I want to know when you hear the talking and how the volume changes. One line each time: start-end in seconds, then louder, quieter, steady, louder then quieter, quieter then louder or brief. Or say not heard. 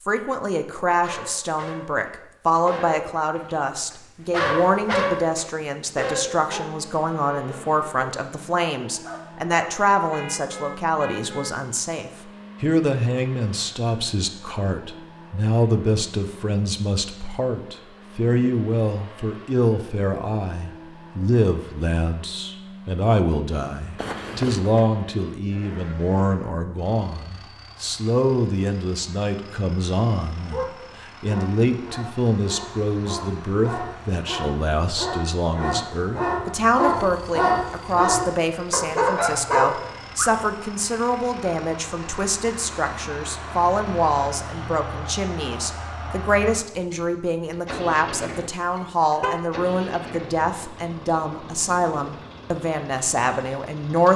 0.1-54.1 steady.